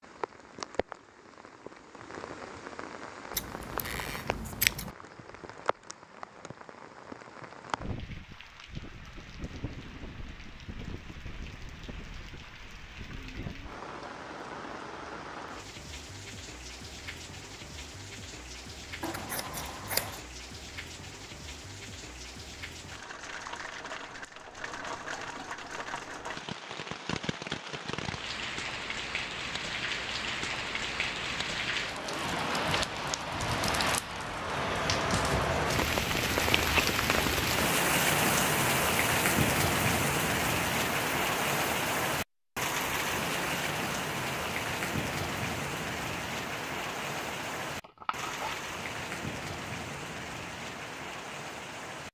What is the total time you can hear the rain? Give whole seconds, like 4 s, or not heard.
52 s.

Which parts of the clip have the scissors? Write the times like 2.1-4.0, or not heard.
3.4-4.9, 19.0-20.2, 47.8-48.6.